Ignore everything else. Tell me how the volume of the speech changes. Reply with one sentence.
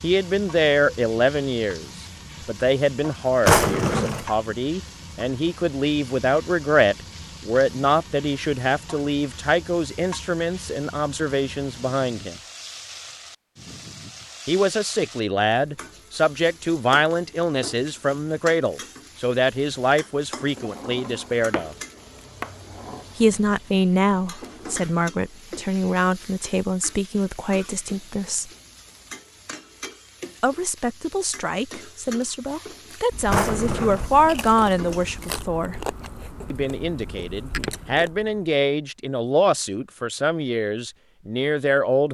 The volume of the speech stays about the same.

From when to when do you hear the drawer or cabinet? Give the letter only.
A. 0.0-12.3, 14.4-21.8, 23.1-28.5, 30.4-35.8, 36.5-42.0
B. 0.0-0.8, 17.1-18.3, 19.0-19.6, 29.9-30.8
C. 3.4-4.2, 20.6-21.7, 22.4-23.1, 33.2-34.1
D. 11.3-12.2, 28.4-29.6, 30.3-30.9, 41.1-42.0
C.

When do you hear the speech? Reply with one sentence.
The speech can be heard from 0.0 to 12.3 s, from 14.4 to 21.8 s, from 23.1 to 28.5 s, from 30.4 to 35.8 s and from 36.5 to 42.0 s.